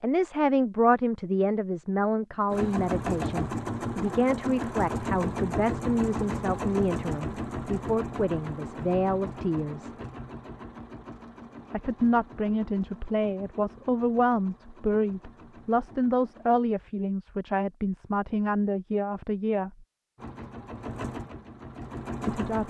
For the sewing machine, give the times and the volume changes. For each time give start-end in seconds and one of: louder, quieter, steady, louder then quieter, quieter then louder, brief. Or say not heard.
2.5-16.6 quieter
20.1-22.6 brief.